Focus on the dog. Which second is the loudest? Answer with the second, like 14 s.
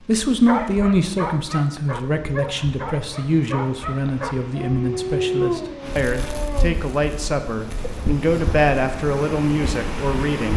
5 s.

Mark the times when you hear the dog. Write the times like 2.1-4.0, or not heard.
0.5-7.0.